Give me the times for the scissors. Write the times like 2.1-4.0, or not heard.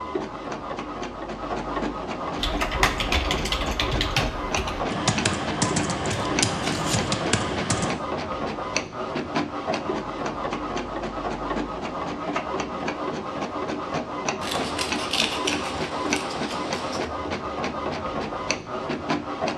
6.1-7.1, 14.4-17.1.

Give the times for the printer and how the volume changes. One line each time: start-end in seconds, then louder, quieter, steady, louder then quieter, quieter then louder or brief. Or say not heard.
0.0-19.5 steady.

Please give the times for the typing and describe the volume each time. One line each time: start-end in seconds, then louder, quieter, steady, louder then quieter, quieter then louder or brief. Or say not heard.
2.4-7.9 steady.